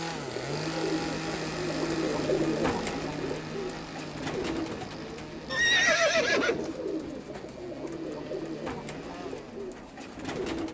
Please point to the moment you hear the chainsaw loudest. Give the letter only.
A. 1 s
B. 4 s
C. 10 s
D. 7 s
A.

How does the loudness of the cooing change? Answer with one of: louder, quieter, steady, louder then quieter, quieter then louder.
quieter.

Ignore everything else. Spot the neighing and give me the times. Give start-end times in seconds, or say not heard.
5.5-6.7.